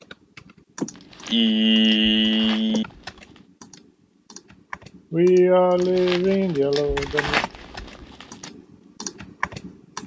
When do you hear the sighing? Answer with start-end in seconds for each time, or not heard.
0.8-2.9, 5.1-7.4.